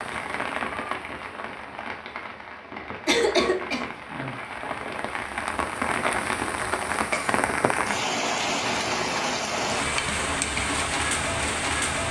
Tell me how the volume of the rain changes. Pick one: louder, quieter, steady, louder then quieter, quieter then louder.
louder.